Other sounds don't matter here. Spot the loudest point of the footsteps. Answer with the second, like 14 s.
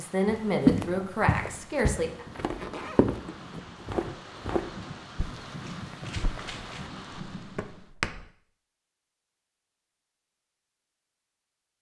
1 s.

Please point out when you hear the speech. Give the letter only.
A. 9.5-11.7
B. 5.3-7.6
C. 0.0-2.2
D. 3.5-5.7
C.